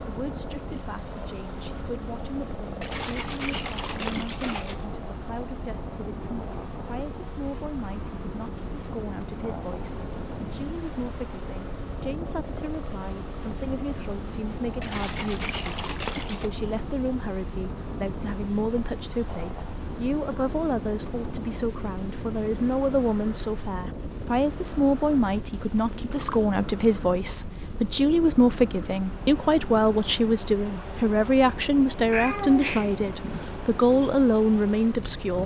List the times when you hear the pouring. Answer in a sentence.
The pouring can be heard from 2.8 to 4.8 s, from 14.8 to 16.5 s and from 25.6 to 26.4 s.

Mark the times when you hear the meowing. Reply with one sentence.
You can hear the meowing from 32.1 to 33.5 s.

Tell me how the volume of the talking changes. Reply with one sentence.
The loudness of the talking goes up.